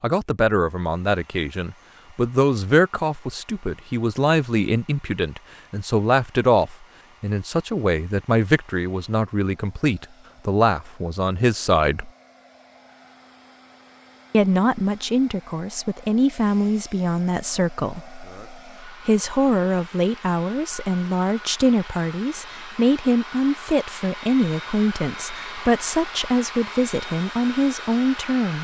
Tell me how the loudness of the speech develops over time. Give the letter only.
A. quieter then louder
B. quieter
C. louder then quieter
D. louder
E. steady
E.